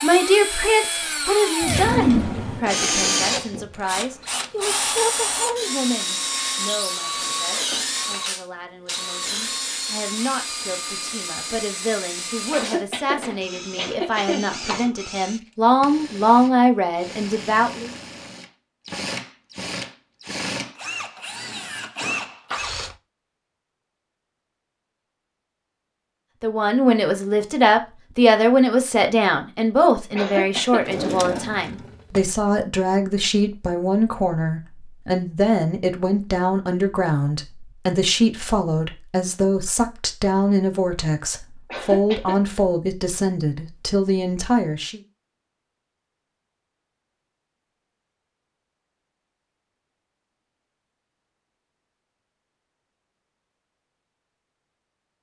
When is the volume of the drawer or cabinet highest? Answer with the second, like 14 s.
2 s.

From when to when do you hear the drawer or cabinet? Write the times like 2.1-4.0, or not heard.
1.6-2.7, 30.8-32.2.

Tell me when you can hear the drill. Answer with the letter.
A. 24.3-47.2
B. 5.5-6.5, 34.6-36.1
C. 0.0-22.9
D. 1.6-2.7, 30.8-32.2
C.